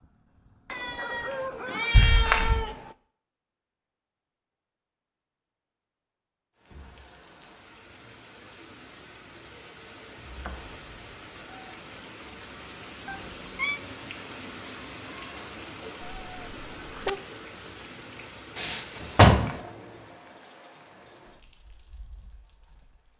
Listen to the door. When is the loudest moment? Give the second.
19 s.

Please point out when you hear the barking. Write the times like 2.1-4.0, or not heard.
0.0-1.9.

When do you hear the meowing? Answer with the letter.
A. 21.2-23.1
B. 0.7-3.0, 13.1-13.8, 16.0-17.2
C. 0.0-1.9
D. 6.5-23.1
B.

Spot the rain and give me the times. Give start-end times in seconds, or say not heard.
6.5-23.1.